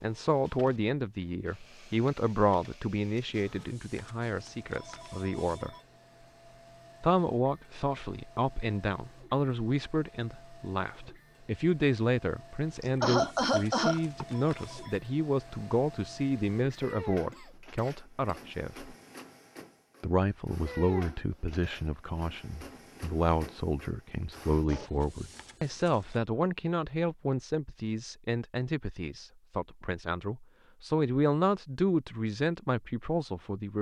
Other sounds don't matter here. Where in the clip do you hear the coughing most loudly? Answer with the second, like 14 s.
13 s.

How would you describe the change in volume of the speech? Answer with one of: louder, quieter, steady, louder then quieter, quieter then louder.
steady.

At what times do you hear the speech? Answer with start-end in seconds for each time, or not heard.
0.0-5.8, 7.0-18.9, 20.0-33.7.